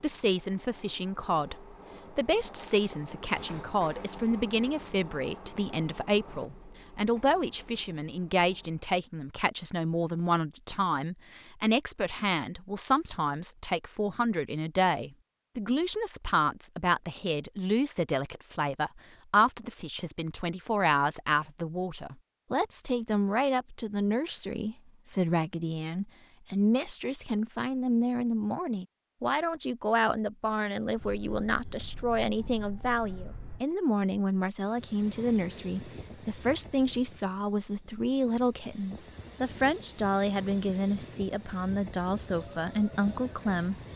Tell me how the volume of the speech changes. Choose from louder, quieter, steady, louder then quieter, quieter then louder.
steady.